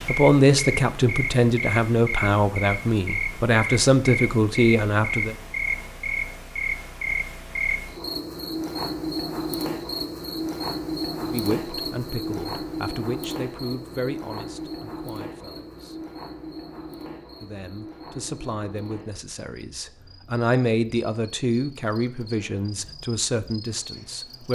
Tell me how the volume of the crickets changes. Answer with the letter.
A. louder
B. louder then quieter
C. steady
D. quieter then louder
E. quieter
E.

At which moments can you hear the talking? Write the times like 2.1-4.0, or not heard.
0.1-5.3, 11.2-16.0, 17.4-24.4.